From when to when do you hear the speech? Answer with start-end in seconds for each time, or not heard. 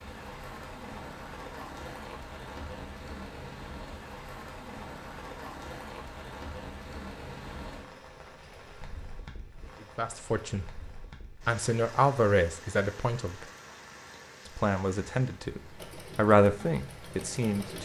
9.9-10.7, 11.4-13.4, 14.4-17.8.